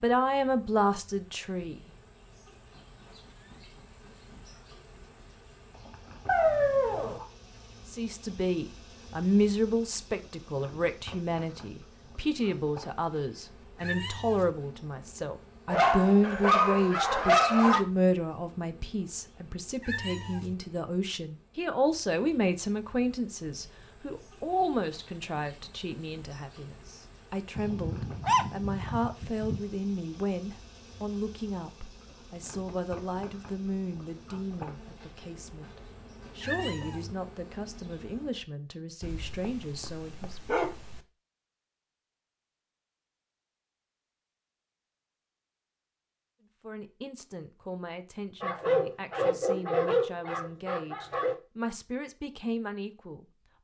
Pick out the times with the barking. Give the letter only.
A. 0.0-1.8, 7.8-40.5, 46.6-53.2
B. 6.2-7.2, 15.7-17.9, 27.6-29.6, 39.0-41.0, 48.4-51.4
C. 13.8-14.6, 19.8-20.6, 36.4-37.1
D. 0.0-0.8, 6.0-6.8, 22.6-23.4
B.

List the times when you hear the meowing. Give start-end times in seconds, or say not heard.
13.8-14.6, 19.8-20.6, 36.4-37.1.